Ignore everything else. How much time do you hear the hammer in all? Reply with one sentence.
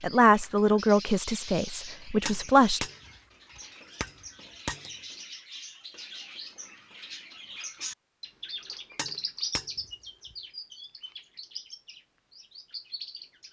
You can hear the hammer for 4 seconds altogether.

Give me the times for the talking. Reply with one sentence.
The talking can be heard from 0.0 to 2.9 s.